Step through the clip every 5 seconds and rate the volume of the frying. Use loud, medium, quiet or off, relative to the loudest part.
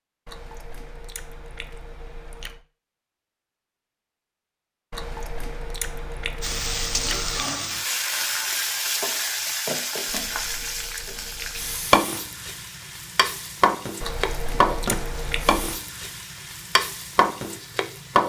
off, loud, loud, loud.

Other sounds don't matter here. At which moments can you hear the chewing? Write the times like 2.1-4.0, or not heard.
0.2-2.6, 4.9-7.5, 10.1-11.9, 14.0-15.8.